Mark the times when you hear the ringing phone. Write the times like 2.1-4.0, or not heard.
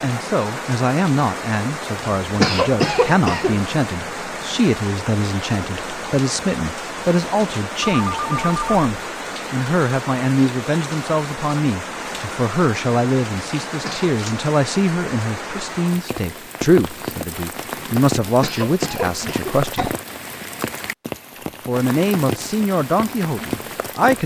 7.8-8.9.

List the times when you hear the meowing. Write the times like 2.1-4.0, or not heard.
not heard.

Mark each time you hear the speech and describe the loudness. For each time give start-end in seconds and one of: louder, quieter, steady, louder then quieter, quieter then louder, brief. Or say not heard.
0.0-19.9 steady
21.6-24.2 brief.